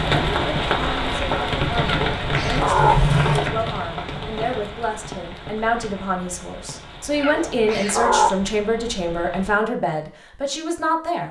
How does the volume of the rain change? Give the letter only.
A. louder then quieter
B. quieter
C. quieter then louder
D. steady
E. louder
B.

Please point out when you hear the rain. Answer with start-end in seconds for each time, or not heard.
0.0-9.6.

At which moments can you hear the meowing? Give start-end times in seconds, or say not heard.
1.9-3.0, 7.1-8.3.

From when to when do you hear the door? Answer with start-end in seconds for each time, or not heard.
2.5-3.4.